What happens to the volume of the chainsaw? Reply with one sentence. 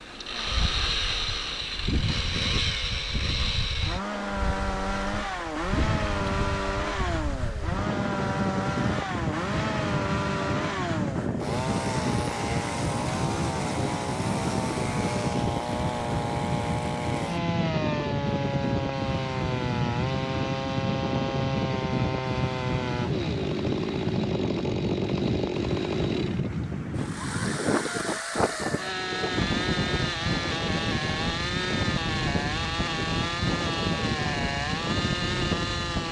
The loudness of the chainsaw stays about the same.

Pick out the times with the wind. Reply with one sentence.
The wind can be heard from 0.0 to 36.0 s.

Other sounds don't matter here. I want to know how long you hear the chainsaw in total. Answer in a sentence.
You can hear the chainsaw for 36 seconds altogether.